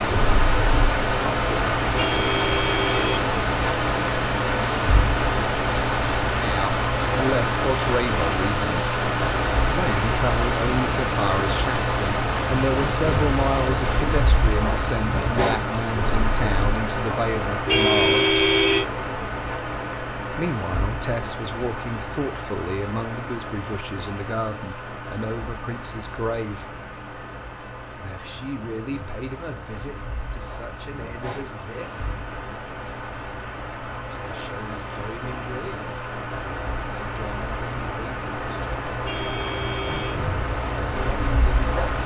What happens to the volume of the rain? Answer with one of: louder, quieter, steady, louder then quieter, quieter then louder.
quieter then louder.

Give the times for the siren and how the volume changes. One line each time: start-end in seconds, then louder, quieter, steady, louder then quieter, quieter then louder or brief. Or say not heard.
not heard.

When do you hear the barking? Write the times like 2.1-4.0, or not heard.
not heard.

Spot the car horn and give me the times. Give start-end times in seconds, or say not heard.
1.9-3.4, 17.6-18.9, 39.0-40.2.